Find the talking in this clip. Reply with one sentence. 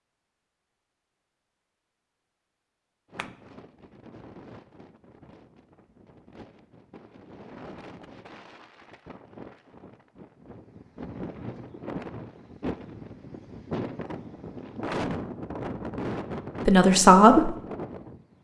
The talking can be heard from 16.6 to 17.6 s.